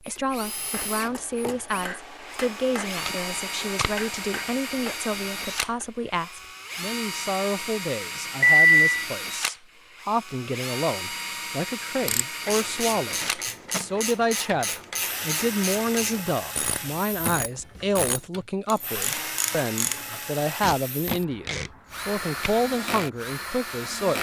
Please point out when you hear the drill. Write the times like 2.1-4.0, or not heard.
0.0-24.1.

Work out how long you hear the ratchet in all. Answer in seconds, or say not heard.
8 s.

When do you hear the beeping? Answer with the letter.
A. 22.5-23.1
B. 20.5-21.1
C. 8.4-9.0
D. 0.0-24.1
C.